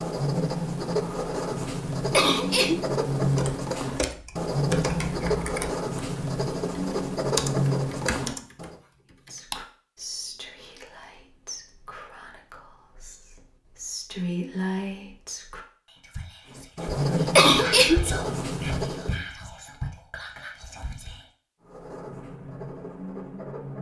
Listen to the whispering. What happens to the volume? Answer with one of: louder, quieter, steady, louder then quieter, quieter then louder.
louder then quieter.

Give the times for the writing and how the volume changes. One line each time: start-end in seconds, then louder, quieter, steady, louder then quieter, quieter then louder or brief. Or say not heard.
0.0-8.8 steady
16.5-19.2 brief
21.6-23.7 brief.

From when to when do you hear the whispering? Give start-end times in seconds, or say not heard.
9.2-21.2.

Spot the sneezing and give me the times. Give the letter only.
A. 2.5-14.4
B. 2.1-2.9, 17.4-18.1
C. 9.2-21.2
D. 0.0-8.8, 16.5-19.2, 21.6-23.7
B.